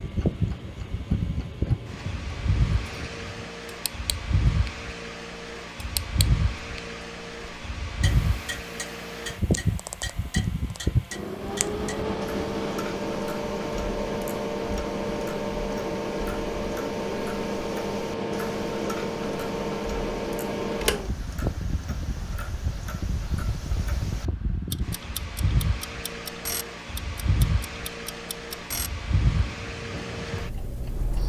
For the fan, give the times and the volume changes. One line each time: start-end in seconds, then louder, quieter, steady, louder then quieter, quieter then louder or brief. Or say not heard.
0.0-31.2 steady.